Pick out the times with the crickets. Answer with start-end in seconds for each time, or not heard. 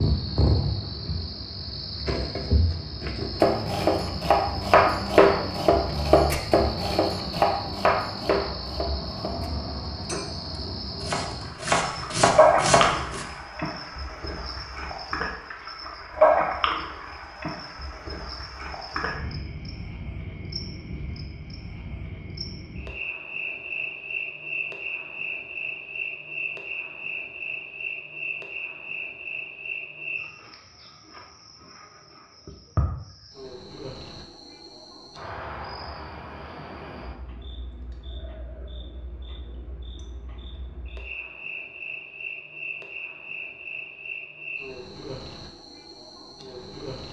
0.0-47.0.